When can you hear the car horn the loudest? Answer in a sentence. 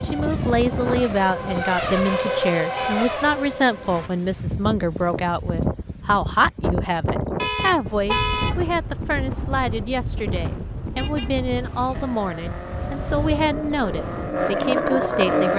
The volume of the car horn peaks at 8 seconds.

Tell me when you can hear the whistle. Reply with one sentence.
You can't hear the whistle here.